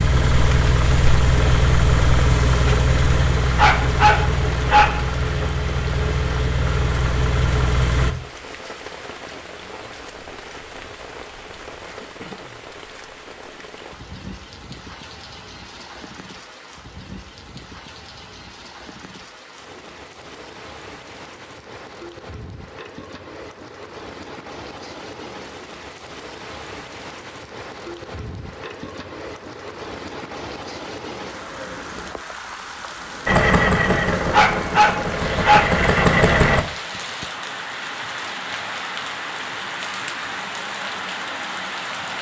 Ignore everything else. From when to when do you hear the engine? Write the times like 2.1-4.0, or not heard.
0.0-8.2, 33.2-36.6.